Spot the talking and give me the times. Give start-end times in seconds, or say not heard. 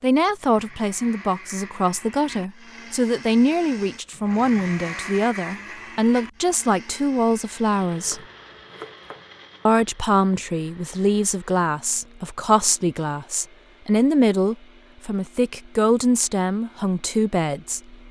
0.0-8.2, 9.7-18.0.